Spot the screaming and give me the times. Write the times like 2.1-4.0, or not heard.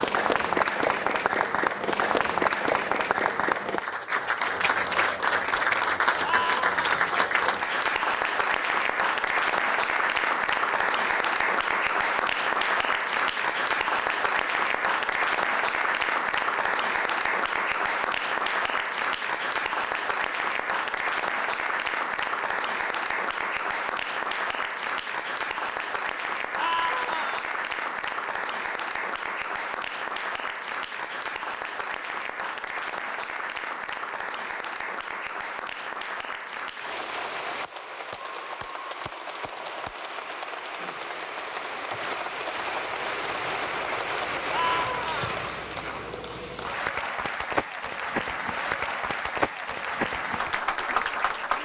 6.2-7.0, 26.6-27.4, 44.5-45.4.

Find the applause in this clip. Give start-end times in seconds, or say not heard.
0.0-51.6.